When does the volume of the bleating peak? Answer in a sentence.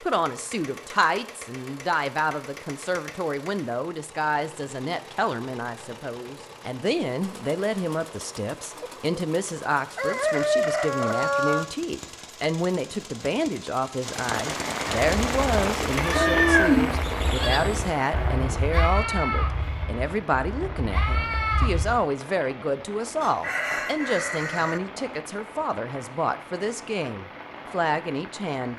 The volume of the bleating peaks at 17 seconds.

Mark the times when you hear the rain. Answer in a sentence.
You can hear the rain from 14.0 to 28.7 s.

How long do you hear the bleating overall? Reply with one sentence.
The bleating can be heard for 7 seconds in total.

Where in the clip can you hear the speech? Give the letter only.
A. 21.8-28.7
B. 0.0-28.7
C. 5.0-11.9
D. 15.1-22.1
B.